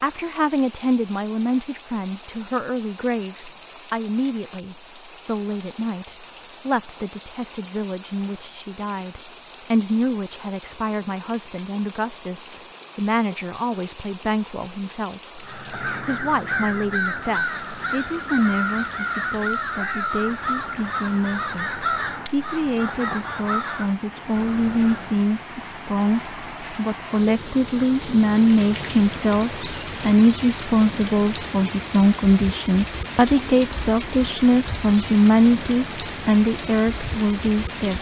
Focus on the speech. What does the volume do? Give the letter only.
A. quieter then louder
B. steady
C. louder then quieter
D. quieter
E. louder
E.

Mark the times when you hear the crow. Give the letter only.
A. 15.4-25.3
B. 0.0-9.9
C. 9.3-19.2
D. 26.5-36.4
A.